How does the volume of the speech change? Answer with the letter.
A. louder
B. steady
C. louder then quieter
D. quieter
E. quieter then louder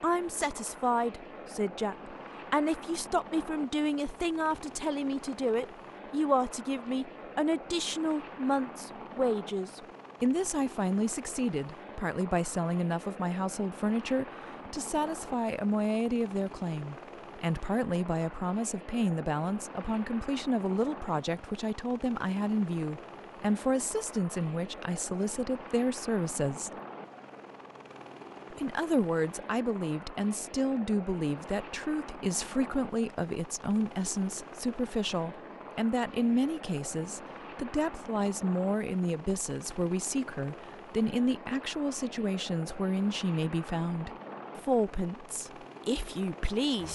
B.